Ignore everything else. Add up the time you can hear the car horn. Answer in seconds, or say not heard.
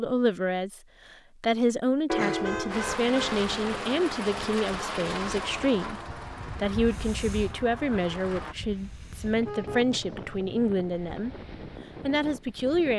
3 s.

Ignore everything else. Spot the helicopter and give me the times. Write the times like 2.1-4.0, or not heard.
2.6-8.6.